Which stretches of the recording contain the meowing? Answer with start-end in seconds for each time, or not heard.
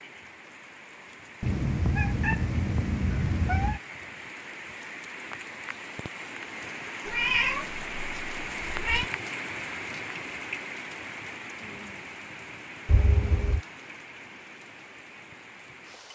1.4-3.8, 7.0-9.1, 12.8-13.6.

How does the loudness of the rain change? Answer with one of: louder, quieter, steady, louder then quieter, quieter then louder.
louder then quieter.